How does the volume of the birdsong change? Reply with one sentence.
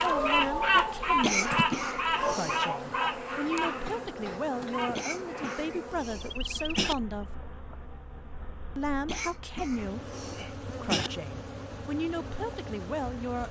The volume of the birdsong goes down.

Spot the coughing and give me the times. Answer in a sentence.
You can hear the coughing from 1.2 to 2.7 s, from 5.0 to 7.0 s and from 9.1 to 11.1 s.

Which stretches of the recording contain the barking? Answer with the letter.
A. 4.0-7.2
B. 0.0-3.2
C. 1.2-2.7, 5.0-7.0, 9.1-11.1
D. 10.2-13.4
B.